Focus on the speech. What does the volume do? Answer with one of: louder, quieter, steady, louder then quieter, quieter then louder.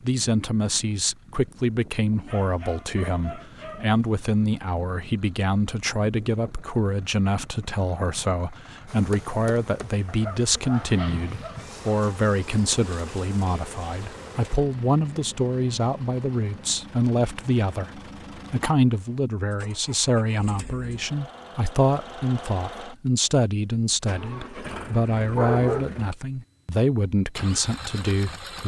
steady.